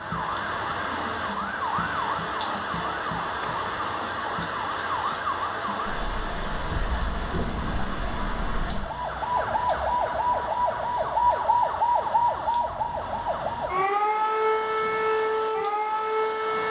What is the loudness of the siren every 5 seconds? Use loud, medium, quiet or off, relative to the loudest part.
medium, medium, loud, loud.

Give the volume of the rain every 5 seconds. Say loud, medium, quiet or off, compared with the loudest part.
loud, loud, medium, medium.